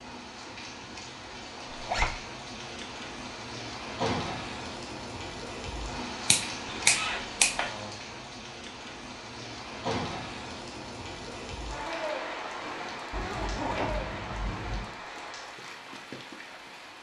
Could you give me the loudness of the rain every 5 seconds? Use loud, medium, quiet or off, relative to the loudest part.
loud, loud, loud, medium.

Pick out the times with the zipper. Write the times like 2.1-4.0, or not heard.
1.7-2.1, 6.7-7.7, 13.1-14.9.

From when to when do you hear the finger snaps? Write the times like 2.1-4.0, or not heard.
6.2-7.5.